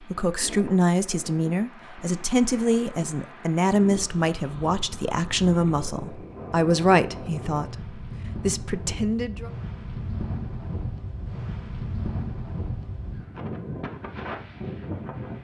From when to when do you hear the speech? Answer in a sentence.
The speech can be heard from 0.0 to 9.5 s.